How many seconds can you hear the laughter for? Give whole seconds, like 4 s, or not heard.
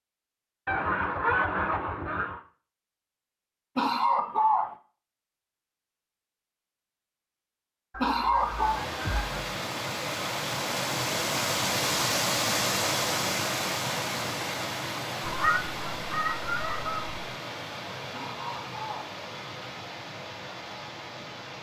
3 s.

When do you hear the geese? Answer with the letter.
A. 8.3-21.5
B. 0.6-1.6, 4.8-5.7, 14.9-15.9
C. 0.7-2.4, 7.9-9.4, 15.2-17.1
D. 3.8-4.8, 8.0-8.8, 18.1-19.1
C.